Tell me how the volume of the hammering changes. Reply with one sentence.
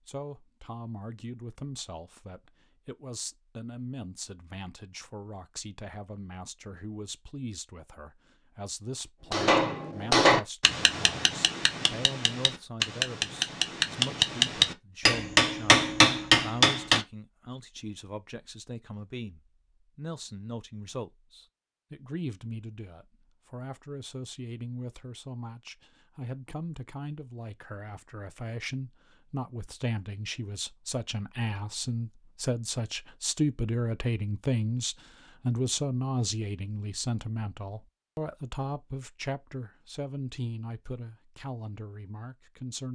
The loudness of the hammering goes down, then up.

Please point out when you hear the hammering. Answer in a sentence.
You can hear the hammering from 9.3 to 17.1 s.